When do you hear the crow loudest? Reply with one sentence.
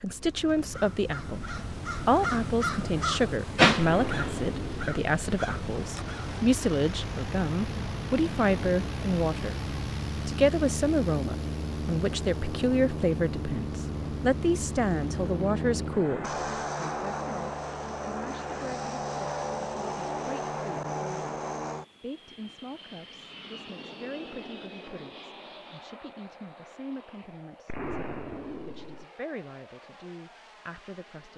The volume of the crow peaks at 4 seconds.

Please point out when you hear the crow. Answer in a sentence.
The crow can be heard from 0.7 to 6.5 s.